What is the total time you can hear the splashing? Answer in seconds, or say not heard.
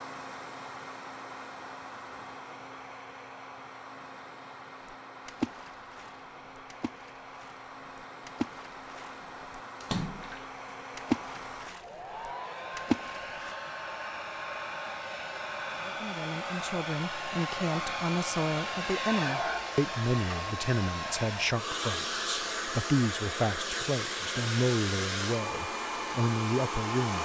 9 s.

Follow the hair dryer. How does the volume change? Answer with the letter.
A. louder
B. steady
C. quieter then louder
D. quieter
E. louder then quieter
A.